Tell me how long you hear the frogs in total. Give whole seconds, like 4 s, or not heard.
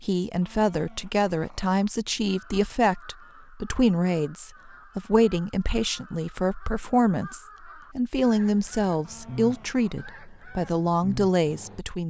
not heard.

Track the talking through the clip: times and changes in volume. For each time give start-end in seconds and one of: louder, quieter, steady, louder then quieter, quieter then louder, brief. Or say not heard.
0.0-12.0 steady.